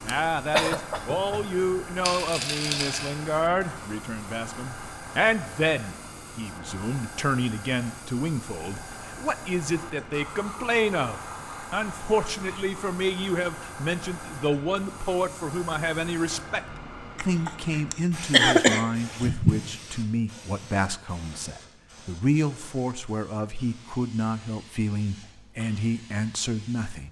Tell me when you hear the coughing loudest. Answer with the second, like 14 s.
19 s.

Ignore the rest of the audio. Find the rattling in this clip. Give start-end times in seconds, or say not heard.
2.0-3.1.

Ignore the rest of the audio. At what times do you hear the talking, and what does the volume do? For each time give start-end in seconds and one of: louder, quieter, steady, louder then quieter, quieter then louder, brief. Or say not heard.
0.0-16.6 steady
17.2-27.0 steady.